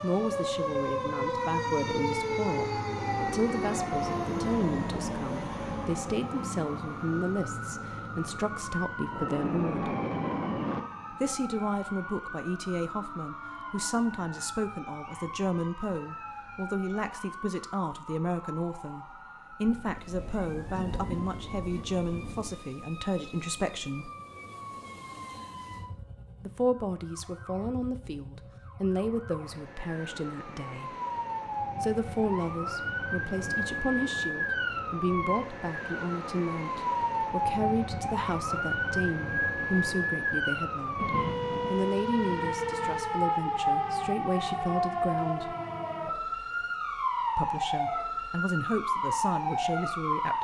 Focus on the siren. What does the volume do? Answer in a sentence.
The loudness of the siren goes down, then up.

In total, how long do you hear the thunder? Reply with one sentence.
You can hear the thunder for 7 seconds altogether.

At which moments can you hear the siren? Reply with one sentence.
You can hear the siren from 0.0 to 50.3 s.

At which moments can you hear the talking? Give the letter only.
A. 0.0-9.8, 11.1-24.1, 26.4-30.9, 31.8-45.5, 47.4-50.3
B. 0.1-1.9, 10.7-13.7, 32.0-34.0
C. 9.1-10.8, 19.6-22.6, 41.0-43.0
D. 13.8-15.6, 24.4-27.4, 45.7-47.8
A.